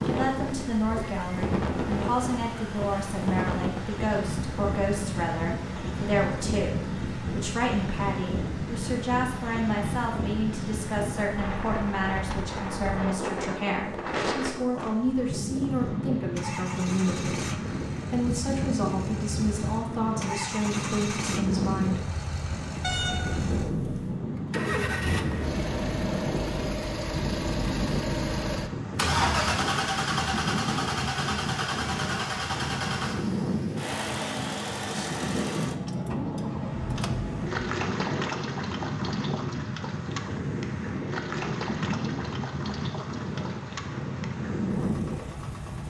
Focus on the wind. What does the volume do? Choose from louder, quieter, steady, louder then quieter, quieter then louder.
steady.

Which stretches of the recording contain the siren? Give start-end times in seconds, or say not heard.
not heard.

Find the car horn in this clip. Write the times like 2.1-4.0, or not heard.
22.8-24.2.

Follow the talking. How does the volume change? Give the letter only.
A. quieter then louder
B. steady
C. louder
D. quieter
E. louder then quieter
B.